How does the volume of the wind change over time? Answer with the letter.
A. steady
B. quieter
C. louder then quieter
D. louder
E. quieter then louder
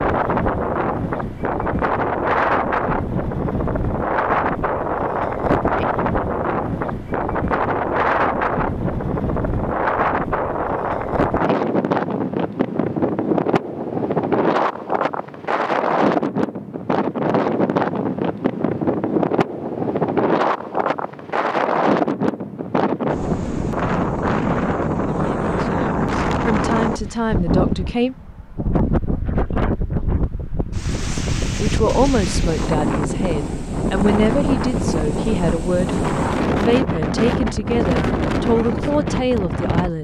A.